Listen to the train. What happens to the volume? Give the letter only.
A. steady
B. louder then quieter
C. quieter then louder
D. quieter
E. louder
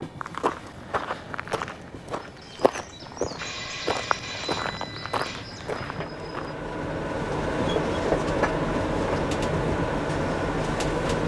E.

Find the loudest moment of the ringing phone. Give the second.
4 s.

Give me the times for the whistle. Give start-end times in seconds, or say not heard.
not heard.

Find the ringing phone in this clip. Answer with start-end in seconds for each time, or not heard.
3.4-6.0.